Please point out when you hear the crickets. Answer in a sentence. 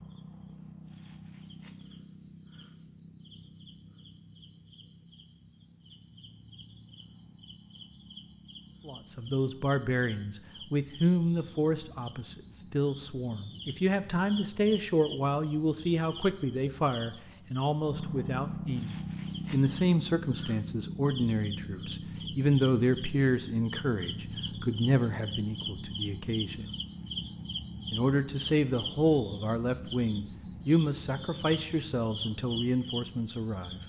You can hear the crickets from 0.0 to 33.8 s.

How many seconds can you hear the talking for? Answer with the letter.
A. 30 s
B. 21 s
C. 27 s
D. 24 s
D.